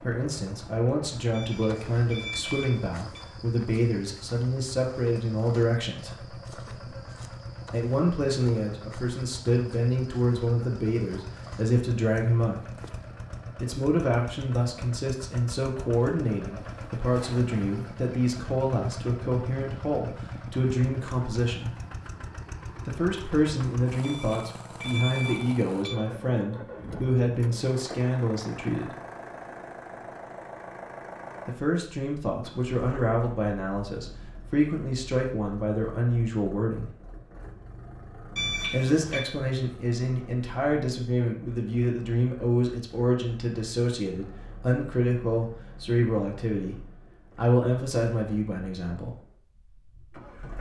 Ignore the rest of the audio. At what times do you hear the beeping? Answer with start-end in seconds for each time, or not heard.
1.3-3.2, 24.0-26.0, 38.4-39.2.